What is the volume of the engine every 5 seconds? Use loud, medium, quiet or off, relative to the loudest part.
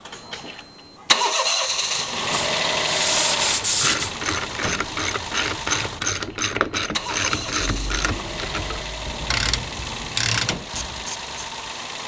loud, medium, medium.